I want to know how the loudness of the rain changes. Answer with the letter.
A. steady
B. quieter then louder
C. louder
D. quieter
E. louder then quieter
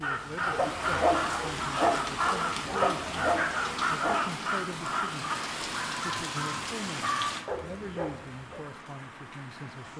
D.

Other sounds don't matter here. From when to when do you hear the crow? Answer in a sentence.
The crow can be heard from 0.0 to 5.3 s.